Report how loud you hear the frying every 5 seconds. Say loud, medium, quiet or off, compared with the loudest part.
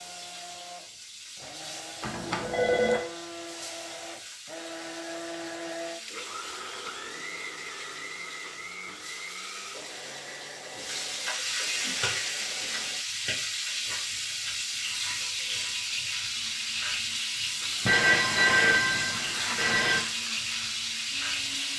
quiet, quiet, loud, loud, loud.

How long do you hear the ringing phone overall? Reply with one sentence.
You can hear the ringing phone for 3 seconds altogether.